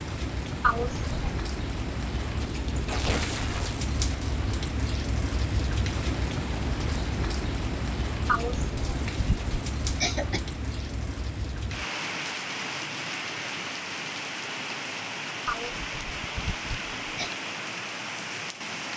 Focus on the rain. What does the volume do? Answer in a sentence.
The loudness of the rain stays about the same.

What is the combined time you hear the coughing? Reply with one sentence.
The coughing can be heard for 5 seconds in total.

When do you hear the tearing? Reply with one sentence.
The tearing can be heard from 2.9 to 3.8 s.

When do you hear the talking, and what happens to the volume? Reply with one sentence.
You can't hear the talking here.